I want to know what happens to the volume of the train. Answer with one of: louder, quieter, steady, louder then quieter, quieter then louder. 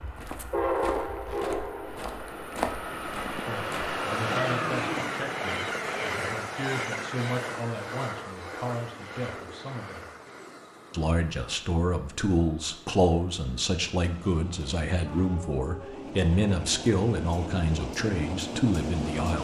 quieter then louder.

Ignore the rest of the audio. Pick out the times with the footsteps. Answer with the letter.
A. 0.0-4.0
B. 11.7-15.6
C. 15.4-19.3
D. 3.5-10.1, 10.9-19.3
A.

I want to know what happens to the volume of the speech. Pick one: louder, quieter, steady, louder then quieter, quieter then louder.
louder.